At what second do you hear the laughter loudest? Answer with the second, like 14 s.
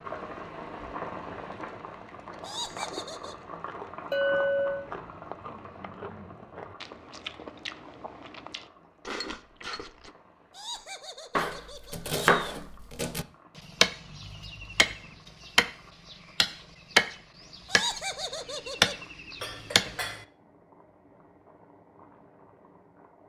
18 s.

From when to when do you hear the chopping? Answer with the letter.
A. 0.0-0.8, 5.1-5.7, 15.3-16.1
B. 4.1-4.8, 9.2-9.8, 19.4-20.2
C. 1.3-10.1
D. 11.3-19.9
D.